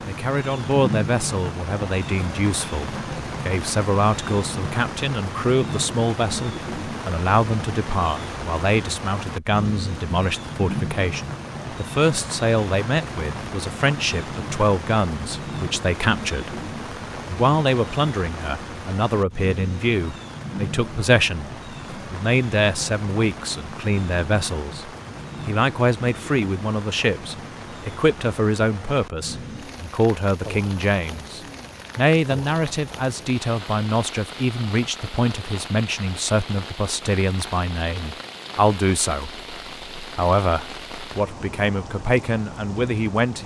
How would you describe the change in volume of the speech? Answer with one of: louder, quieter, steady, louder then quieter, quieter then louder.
steady.